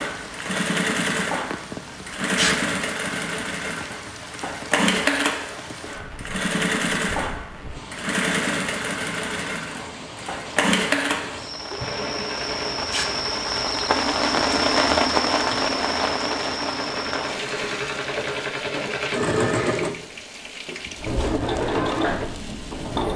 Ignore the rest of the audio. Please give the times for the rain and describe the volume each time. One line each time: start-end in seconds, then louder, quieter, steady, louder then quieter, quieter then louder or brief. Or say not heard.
0.0-23.1 louder then quieter.